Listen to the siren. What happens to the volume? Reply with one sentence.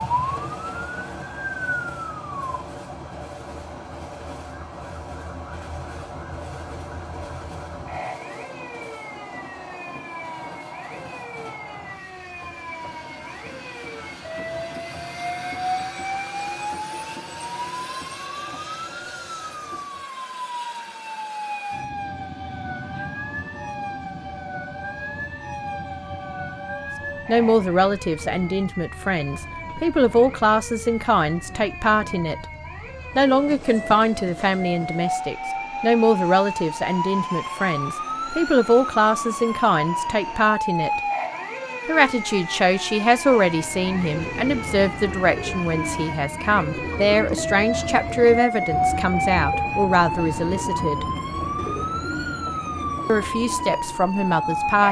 The volume of the siren goes up.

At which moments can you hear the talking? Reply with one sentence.
You can hear the talking from 27.2 to 32.5 s, from 33.1 to 41.0 s, from 41.9 to 51.0 s and from 53.0 to 54.8 s.